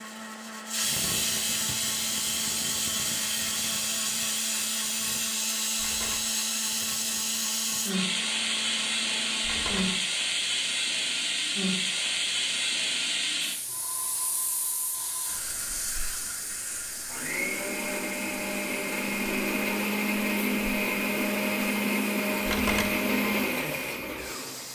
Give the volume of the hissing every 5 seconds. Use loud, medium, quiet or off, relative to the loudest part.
loud, loud, loud, medium, quiet.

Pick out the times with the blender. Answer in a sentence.
The blender can be heard from 0.0 to 10.1 s and from 17.1 to 24.7 s.